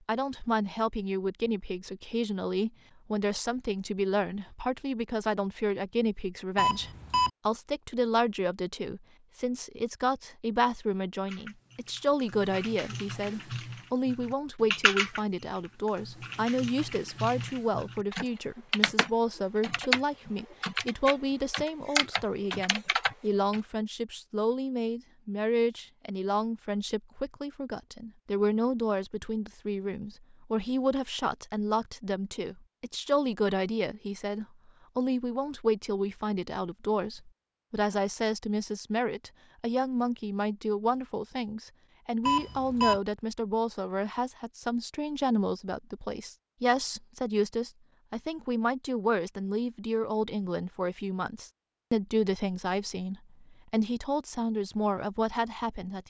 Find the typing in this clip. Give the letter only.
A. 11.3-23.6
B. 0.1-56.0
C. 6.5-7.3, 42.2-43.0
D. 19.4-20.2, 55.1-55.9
A.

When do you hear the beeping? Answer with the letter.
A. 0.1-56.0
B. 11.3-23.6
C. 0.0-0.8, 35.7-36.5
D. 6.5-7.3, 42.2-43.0
D.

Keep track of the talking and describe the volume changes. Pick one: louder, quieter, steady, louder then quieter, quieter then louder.
steady.